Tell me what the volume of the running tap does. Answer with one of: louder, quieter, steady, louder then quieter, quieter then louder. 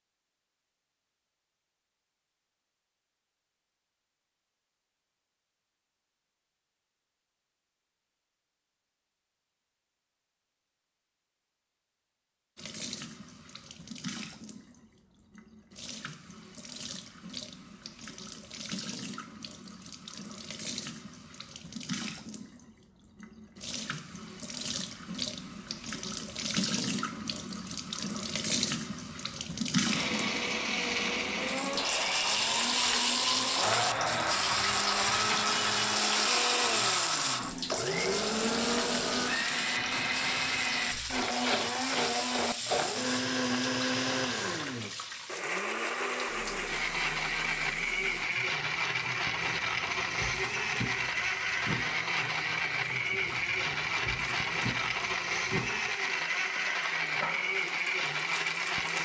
louder then quieter.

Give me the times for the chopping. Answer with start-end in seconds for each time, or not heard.
not heard.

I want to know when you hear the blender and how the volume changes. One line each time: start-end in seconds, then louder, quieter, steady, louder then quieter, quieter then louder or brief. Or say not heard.
29.9-59.0 steady.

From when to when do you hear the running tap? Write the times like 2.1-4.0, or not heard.
12.6-59.0.